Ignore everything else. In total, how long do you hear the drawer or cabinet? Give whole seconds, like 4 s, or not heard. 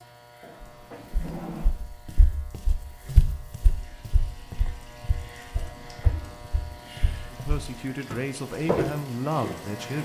2 s.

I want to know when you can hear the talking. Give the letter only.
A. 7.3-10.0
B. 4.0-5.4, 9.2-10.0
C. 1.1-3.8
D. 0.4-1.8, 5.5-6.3
A.